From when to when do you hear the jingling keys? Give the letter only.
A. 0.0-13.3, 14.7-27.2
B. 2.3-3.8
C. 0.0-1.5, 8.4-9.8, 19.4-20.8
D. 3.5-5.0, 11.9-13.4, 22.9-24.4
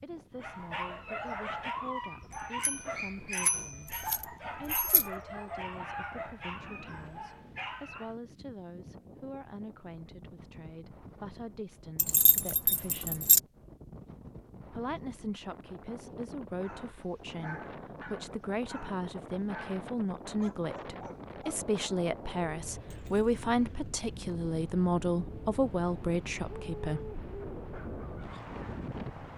D.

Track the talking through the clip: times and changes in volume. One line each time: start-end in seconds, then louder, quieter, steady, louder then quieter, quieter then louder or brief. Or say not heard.
0.0-13.3 steady
14.7-27.2 louder.